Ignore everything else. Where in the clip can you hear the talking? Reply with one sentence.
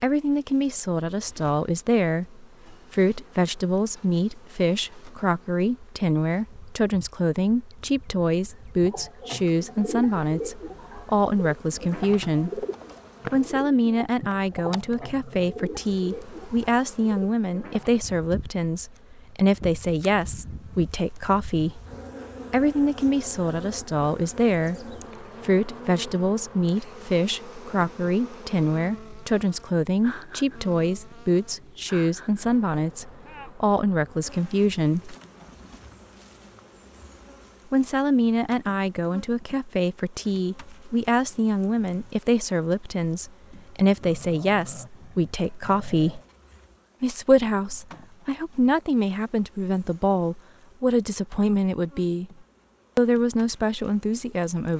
The talking can be heard from 0.0 to 12.7 s, from 13.3 to 21.8 s, from 22.5 to 35.1 s, from 37.7 to 46.2 s, from 47.0 to 52.3 s and from 53.0 to 54.7 s.